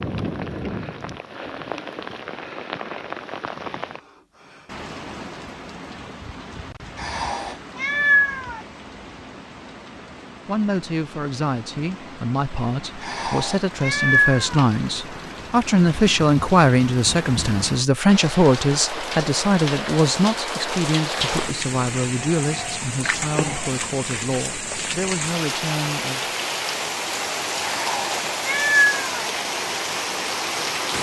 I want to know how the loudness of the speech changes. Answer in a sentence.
The loudness of the speech goes up, then down.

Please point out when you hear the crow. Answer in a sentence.
The crow can't be heard in this clip.